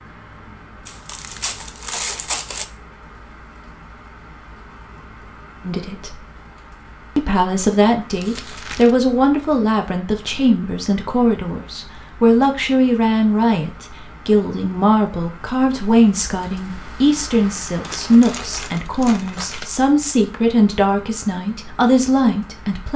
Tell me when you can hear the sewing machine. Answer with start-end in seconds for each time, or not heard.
not heard.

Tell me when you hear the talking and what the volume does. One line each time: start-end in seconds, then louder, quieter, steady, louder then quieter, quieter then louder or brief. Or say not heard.
5.7-6.2 brief
7.2-22.9 steady.